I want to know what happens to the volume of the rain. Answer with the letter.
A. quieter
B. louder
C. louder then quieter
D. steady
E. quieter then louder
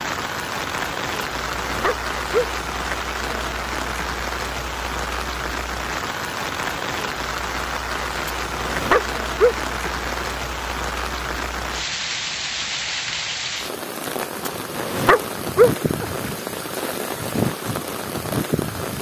D.